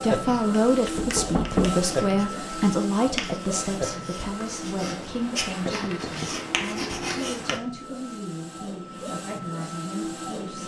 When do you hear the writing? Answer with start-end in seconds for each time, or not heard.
0.2-7.6.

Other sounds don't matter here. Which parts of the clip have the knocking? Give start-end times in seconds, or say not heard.
0.9-1.9, 5.7-7.3.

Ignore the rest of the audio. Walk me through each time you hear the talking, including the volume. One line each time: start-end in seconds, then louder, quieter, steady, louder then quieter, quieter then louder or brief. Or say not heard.
0.0-10.6 quieter.